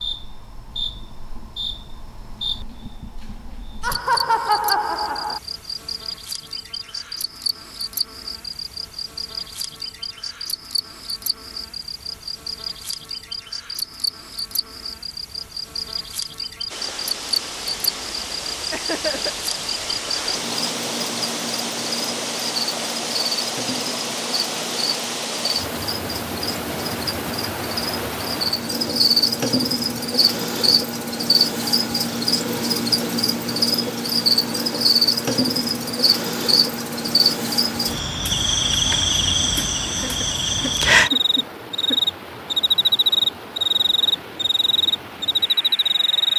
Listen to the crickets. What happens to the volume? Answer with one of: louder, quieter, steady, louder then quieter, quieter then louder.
louder.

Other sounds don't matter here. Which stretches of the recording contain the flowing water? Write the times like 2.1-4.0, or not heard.
16.7-46.3.